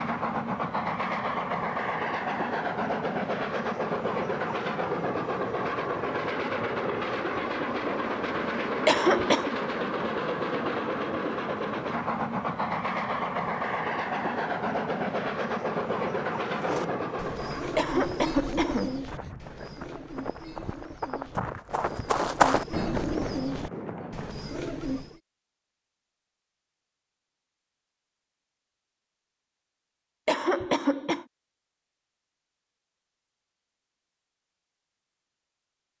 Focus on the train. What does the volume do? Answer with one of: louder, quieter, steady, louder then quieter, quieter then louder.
steady.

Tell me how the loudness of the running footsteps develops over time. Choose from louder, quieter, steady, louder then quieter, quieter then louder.
louder then quieter.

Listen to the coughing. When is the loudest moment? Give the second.
9 s.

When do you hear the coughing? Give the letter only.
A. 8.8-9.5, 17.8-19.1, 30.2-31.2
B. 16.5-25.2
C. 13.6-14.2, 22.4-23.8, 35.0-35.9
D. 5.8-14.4
A.